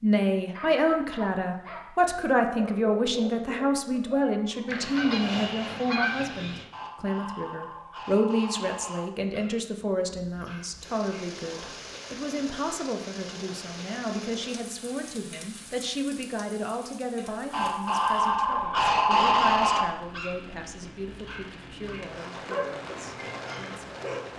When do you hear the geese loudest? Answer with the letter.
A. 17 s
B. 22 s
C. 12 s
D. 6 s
D.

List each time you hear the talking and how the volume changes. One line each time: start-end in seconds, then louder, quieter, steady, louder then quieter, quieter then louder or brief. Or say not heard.
0.0-24.3 quieter.